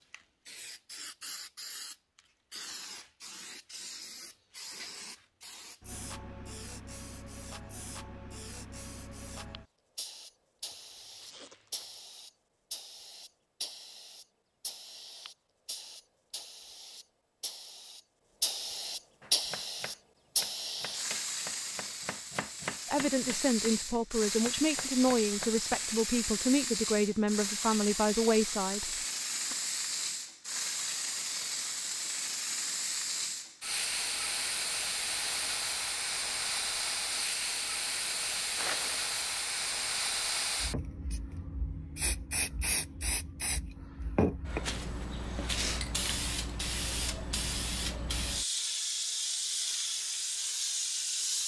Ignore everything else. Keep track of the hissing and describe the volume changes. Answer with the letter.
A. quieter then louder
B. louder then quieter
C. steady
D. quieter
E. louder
E.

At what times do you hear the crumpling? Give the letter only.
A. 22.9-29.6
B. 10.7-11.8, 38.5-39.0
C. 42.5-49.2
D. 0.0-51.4
B.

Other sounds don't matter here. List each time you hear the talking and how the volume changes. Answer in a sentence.
You can hear the talking from 22.9 to 29.6 s, at a steady volume.